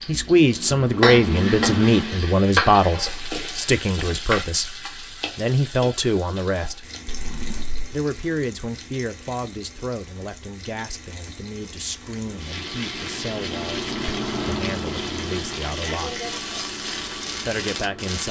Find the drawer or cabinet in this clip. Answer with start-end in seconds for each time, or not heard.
7.0-7.8.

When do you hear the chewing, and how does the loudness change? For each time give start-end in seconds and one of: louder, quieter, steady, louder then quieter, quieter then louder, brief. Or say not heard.
not heard.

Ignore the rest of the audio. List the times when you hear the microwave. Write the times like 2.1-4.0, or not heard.
0.0-2.2, 12.2-18.2.